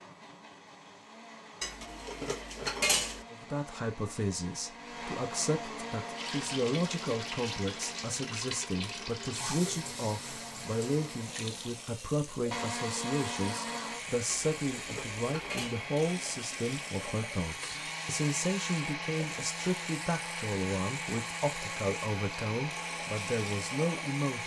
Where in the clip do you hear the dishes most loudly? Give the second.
3 s.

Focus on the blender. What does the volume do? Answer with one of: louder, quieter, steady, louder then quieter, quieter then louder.
louder.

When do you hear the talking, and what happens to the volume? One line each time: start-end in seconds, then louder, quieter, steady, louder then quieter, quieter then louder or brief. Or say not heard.
3.3-24.4 steady.